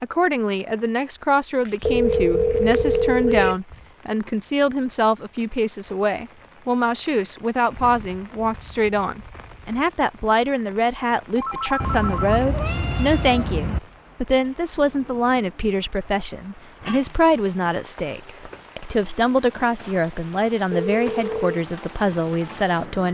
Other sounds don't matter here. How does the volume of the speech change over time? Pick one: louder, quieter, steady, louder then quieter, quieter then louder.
steady.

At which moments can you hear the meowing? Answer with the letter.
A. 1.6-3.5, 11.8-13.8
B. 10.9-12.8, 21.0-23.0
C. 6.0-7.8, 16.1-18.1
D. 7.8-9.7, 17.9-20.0
A.